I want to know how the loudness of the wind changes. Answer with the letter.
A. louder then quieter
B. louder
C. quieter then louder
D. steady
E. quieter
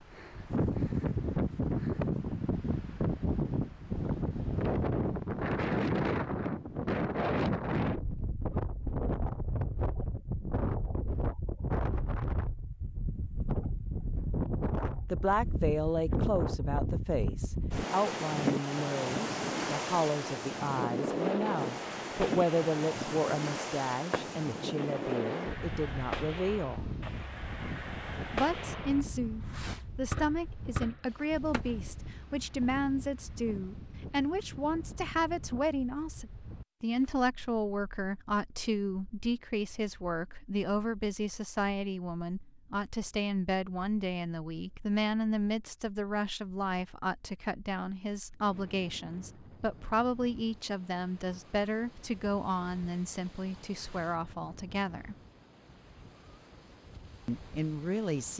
E.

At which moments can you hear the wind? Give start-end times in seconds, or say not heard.
0.0-58.3.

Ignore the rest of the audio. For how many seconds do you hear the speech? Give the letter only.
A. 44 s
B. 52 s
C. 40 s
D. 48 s
C.